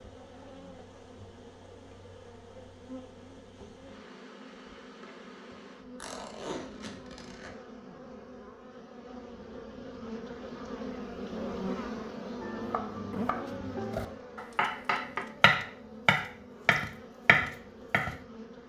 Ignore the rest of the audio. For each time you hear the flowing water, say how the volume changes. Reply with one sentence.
You can't hear the flowing water here.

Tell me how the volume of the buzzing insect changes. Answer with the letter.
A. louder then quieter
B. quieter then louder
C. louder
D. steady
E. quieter
A.